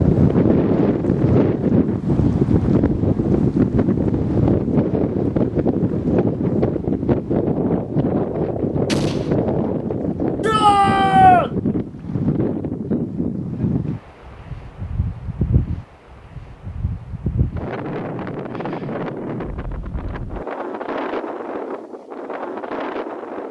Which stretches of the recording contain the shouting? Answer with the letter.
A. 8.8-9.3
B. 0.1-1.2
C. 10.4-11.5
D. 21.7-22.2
C.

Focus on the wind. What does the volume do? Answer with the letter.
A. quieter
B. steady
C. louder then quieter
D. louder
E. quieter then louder
A.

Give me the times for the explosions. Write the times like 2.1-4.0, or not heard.
8.8-9.3.